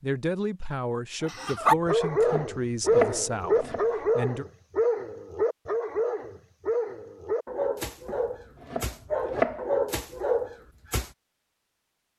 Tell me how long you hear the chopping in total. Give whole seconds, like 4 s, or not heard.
4 s.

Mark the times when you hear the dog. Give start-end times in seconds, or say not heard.
1.2-11.1.